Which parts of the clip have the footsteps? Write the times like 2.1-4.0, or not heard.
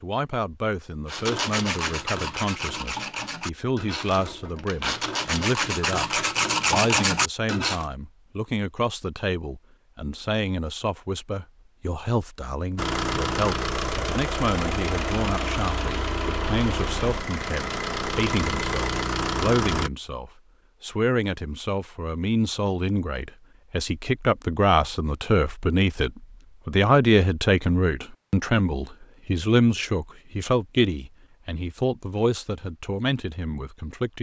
not heard.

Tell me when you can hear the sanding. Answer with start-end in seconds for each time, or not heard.
1.1-7.8.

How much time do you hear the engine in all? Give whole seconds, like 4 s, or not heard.
7 s.